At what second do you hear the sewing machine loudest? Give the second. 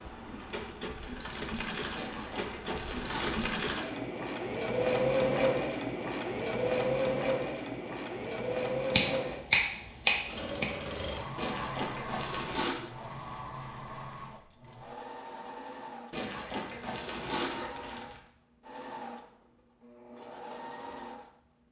5 s.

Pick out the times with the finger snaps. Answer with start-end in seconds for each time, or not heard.
8.9-10.7.